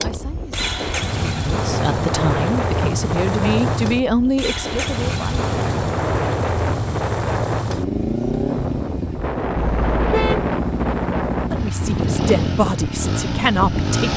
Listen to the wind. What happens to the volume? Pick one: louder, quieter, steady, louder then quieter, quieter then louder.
steady.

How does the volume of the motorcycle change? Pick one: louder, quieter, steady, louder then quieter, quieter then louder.
steady.